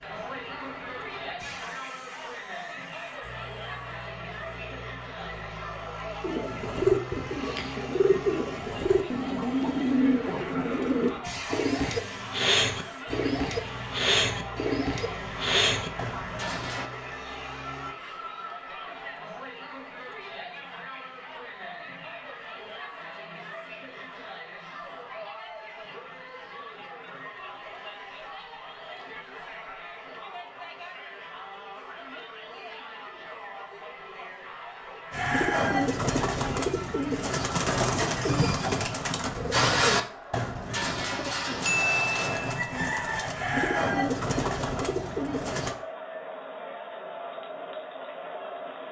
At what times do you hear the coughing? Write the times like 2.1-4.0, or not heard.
not heard.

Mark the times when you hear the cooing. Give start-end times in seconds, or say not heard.
6.2-16.9, 35.1-45.8.